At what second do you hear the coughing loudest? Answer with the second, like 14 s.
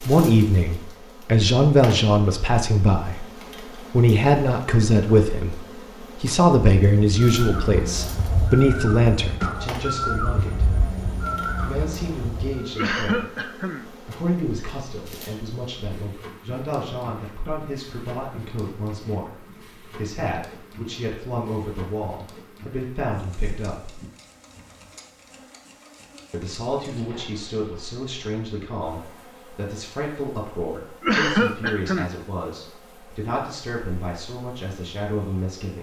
31 s.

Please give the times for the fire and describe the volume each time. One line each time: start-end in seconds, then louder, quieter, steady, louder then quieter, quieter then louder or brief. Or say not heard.
not heard.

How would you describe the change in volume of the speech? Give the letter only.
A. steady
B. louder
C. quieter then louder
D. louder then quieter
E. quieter
E.